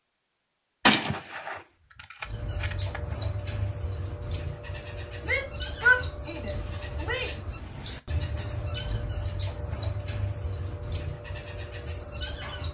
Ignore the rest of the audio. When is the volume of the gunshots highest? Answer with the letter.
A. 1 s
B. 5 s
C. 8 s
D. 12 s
A.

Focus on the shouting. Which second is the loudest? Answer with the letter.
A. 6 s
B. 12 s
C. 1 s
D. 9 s
A.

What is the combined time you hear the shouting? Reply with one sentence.
The shouting can be heard for 2 seconds in total.